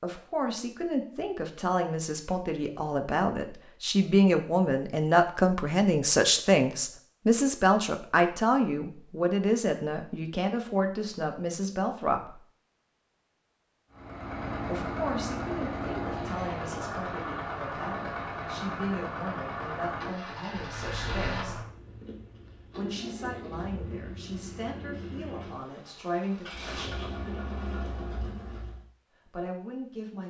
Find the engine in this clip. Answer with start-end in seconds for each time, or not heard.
13.9-28.9.